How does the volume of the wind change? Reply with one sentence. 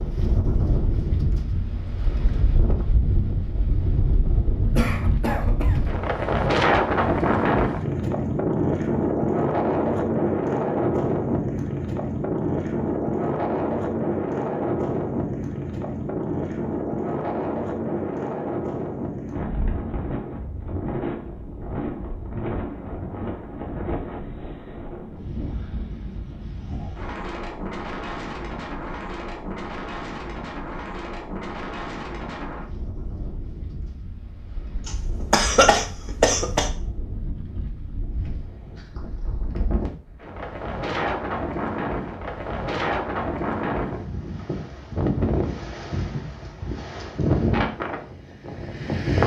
The volume of the wind goes down, then up.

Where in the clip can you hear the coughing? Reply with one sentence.
The coughing can be heard from 4.8 to 5.8 s and from 34.9 to 36.7 s.